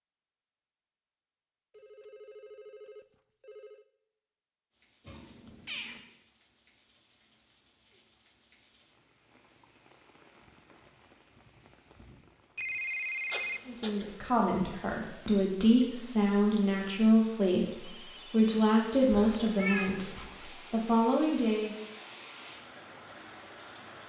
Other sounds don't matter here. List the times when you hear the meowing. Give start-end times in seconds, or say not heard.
5.0-6.0, 13.3-14.2, 19.1-20.5.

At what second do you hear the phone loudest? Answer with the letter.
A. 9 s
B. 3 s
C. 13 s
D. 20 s
C.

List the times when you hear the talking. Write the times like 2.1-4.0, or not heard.
13.7-21.8.